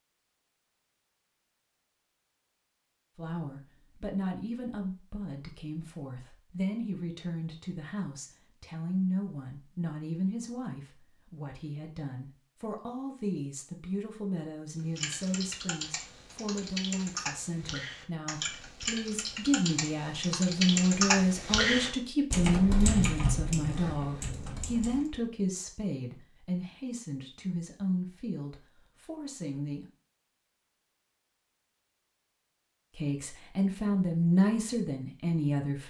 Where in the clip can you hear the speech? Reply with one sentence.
You can hear the speech from 3.1 to 29.9 s and from 33.0 to 35.8 s.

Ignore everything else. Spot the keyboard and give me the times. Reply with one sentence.
The keyboard can be heard from 14.9 to 25.1 s.